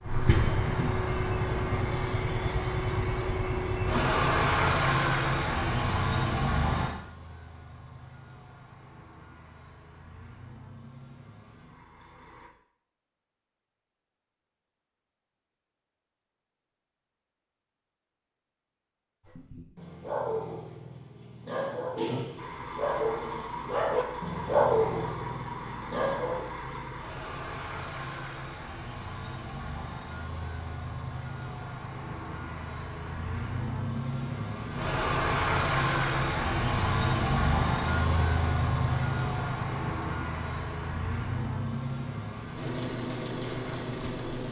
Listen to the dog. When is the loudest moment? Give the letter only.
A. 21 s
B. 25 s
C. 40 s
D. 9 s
B.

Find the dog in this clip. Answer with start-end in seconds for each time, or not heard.
19.2-26.4.